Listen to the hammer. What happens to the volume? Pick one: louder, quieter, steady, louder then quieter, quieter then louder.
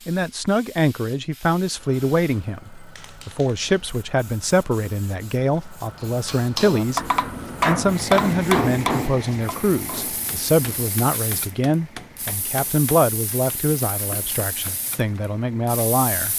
quieter.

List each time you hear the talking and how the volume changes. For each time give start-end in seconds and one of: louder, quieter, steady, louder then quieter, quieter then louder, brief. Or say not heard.
0.1-16.3 steady.